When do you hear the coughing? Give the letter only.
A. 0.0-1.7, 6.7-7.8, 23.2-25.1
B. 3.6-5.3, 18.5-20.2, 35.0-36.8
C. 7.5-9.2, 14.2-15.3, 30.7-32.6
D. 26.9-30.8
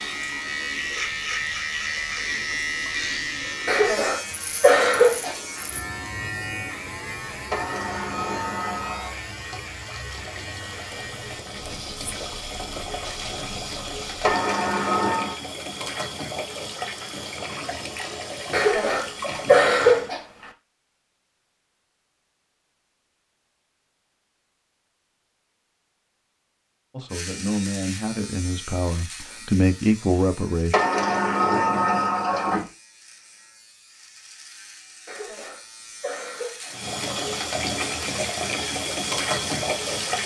B.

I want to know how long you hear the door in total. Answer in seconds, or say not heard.
5 s.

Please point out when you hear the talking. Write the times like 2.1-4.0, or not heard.
26.9-30.8.